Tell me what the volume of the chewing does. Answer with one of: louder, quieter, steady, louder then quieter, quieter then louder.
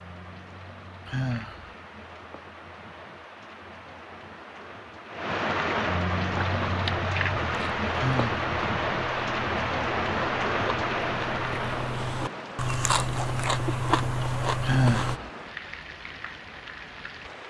louder.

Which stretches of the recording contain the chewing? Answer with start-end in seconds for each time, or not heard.
6.2-15.2.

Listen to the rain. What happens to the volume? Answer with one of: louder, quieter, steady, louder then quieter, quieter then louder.
louder then quieter.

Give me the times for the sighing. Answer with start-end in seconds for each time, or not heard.
1.1-1.8, 8.0-8.4, 14.6-15.3.